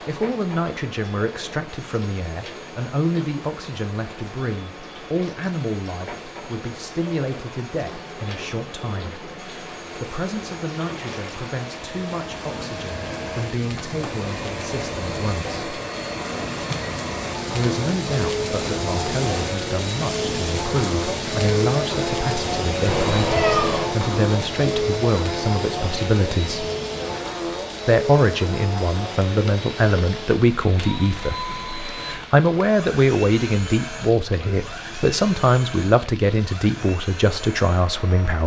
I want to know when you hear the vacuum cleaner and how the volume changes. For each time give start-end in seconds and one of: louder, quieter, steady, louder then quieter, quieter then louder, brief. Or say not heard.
0.0-38.4 louder then quieter.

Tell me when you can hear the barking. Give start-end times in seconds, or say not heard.
not heard.